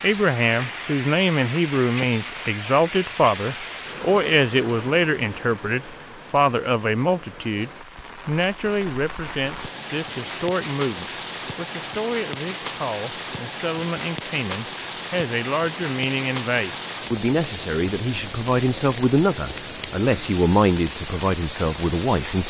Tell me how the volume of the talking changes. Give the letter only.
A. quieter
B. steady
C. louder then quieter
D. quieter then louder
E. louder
D.